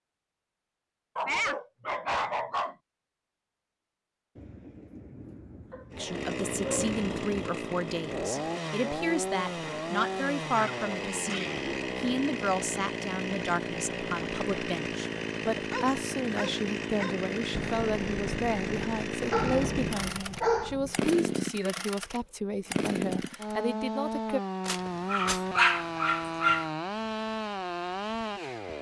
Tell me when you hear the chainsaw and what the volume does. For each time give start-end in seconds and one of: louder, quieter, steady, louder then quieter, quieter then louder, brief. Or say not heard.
5.9-28.7 steady.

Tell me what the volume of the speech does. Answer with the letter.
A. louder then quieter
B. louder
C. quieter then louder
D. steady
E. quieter
D.